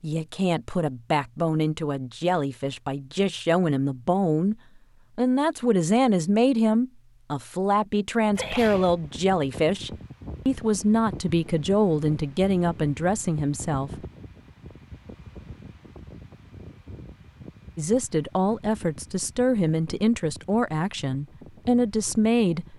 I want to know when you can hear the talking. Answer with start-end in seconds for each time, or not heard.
0.0-4.5, 5.2-14.1, 17.8-22.7.